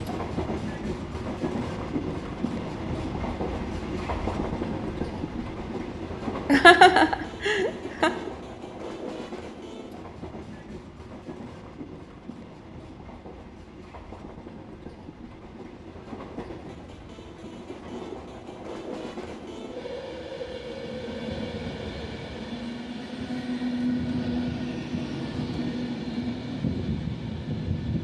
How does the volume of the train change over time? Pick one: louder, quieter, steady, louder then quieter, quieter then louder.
quieter then louder.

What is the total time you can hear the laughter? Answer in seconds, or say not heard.
2 s.